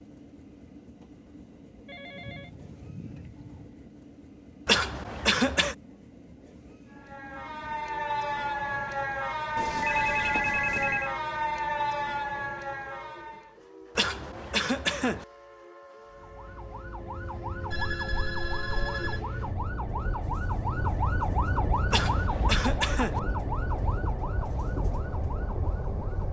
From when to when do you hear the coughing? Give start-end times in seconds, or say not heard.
4.7-5.8, 13.9-15.2, 21.9-23.2.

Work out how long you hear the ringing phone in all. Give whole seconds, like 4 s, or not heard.
5 s.